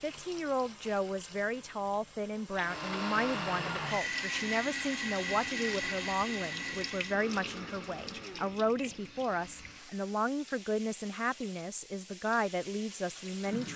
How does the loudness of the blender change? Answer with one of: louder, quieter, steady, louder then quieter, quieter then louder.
quieter.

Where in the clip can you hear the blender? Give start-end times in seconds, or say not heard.
2.5-10.3.